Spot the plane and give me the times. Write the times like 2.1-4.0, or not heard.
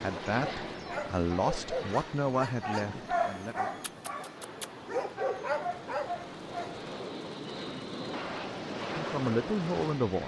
0.0-10.2.